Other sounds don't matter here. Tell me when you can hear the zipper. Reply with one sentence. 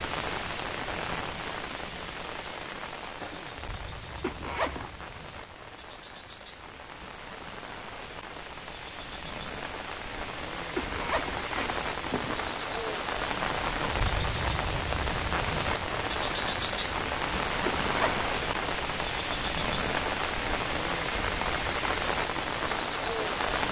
You can hear the zipper from 4.2 to 4.9 s, from 10.8 to 12.5 s and from 17.6 to 18.3 s.